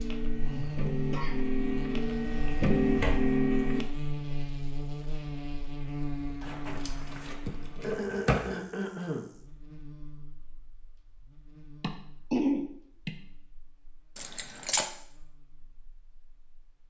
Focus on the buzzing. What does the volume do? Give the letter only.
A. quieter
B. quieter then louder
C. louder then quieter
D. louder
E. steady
A.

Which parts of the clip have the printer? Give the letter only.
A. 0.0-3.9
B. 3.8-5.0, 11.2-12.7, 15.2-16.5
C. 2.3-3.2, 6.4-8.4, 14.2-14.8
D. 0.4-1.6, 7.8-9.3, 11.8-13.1
A.